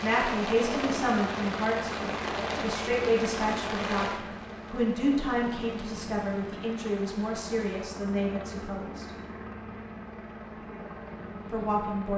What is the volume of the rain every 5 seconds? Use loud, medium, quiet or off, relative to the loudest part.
loud, quiet, off.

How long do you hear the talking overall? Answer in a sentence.
The talking can be heard for 10 seconds in total.